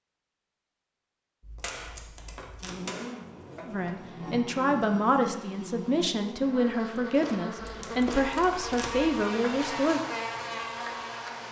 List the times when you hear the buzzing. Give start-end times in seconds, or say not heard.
2.6-11.4.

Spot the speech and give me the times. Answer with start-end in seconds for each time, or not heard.
3.6-10.0.